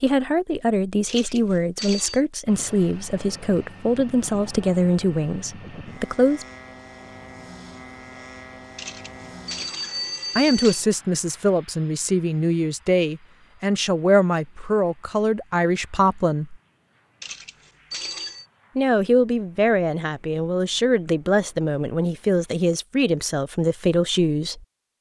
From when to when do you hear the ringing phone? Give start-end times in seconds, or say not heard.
1.1-2.2, 8.8-10.8, 17.2-18.4.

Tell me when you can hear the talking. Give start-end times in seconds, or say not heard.
0.0-6.5, 10.3-16.6, 18.8-24.6.